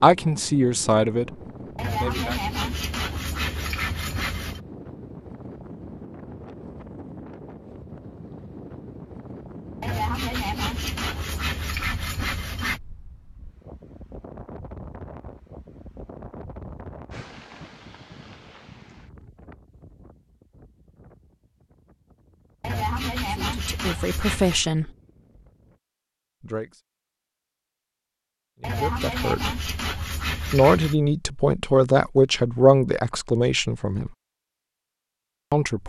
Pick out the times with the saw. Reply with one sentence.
The saw can be heard from 1.8 to 4.6 s, from 9.8 to 12.8 s, from 22.6 to 24.7 s and from 28.6 to 30.9 s.